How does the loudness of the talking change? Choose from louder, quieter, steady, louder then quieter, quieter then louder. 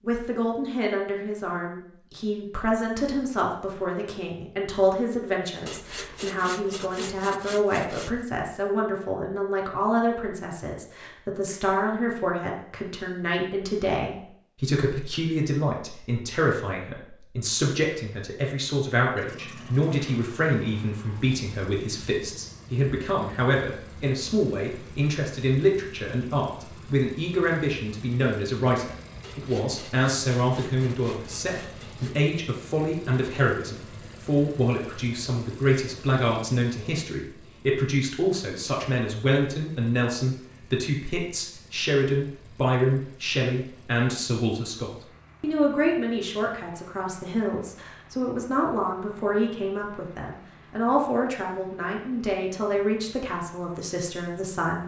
steady.